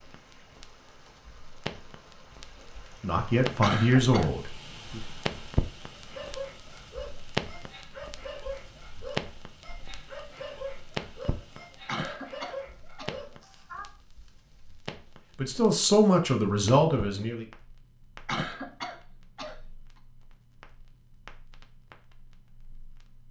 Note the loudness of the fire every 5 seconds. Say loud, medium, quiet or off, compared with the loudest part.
medium, loud, medium, quiet, quiet.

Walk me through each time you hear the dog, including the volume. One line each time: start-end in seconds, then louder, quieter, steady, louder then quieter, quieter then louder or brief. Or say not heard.
5.9-13.9 steady.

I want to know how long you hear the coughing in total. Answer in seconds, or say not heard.
3 s.